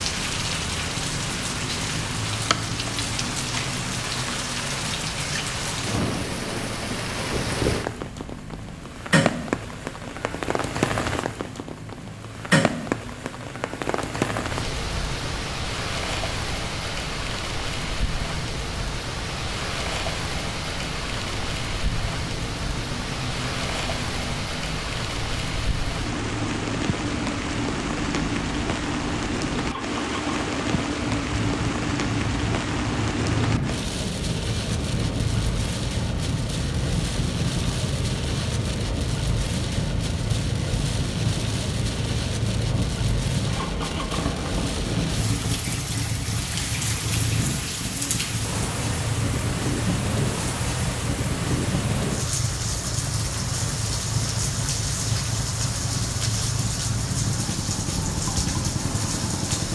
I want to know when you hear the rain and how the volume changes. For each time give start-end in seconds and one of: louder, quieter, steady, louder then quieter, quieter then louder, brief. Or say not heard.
0.0-59.7 steady.